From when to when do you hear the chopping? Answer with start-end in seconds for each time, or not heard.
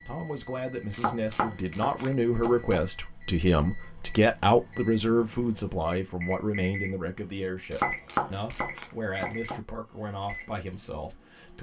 0.9-2.9, 7.7-9.6.